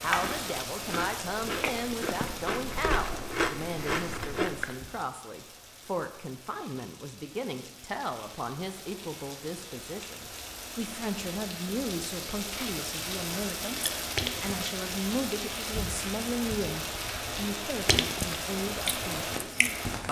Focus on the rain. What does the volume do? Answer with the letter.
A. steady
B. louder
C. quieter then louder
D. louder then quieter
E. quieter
C.